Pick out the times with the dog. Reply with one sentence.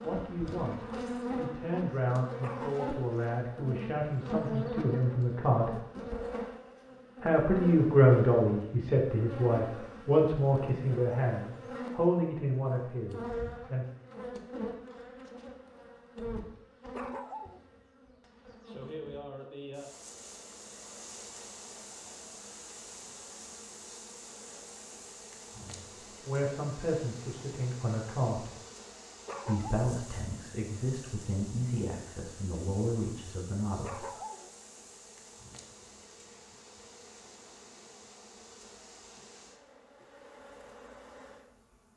The dog can be heard from 2.4 to 2.9 s, from 16.9 to 17.6 s, from 29.2 to 29.9 s and from 33.8 to 34.5 s.